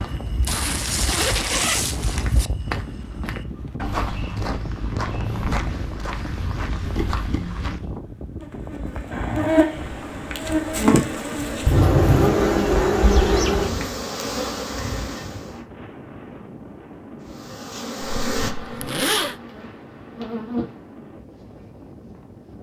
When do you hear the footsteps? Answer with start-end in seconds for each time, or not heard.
0.0-7.8.